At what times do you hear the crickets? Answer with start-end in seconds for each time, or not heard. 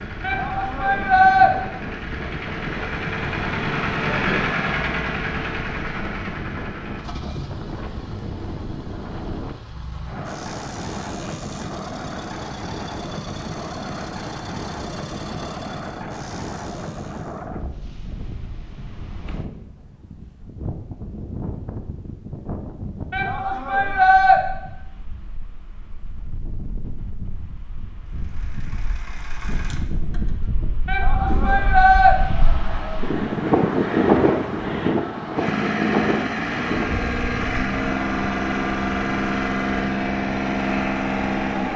not heard.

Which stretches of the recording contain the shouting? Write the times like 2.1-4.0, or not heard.
0.2-1.5, 23.1-24.4, 30.9-32.1.